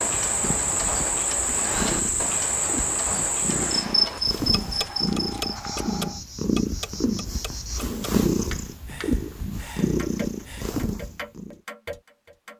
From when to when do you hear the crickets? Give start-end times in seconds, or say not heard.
0.0-7.9.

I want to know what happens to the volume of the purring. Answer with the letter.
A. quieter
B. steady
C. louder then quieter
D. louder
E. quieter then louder
D.